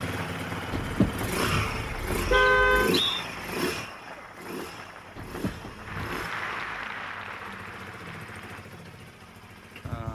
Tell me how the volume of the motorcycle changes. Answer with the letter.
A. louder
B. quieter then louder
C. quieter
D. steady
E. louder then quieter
C.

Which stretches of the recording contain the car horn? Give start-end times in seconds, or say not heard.
0.7-3.0, 5.2-6.3.